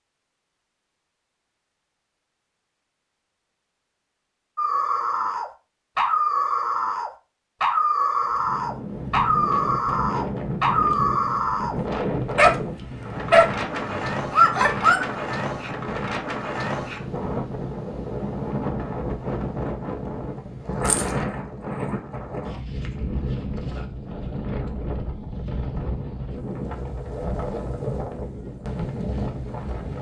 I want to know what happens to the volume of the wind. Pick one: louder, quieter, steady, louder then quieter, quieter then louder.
steady.